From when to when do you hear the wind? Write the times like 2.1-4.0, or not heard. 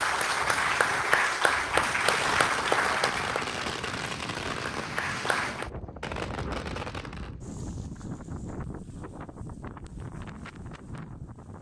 0.0-11.5.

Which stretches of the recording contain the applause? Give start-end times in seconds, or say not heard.
0.0-5.7.